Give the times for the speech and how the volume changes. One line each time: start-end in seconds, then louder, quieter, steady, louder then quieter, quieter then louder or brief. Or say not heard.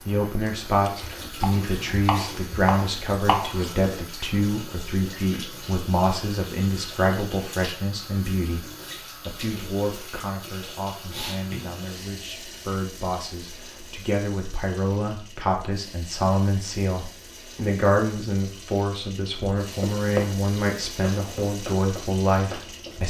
0.1-23.0 quieter then louder.